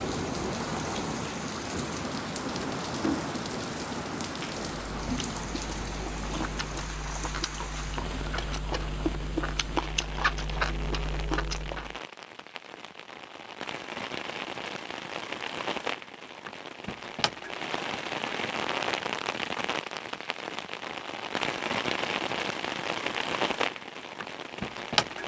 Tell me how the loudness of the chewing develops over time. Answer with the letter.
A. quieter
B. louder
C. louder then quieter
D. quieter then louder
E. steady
B.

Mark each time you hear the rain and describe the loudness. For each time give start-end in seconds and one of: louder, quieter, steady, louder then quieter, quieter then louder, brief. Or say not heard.
0.0-25.2 quieter then louder.